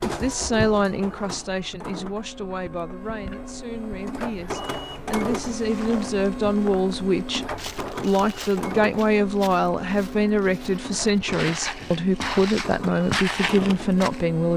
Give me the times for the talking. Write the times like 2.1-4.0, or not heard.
0.0-14.5.